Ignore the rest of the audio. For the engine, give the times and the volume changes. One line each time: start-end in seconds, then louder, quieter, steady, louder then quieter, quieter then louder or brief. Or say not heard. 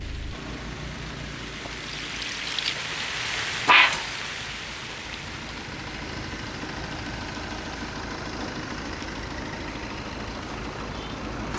0.0-11.5 quieter then louder.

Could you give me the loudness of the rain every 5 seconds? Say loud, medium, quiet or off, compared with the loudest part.
loud, quiet, quiet.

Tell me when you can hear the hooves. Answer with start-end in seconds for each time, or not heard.
not heard.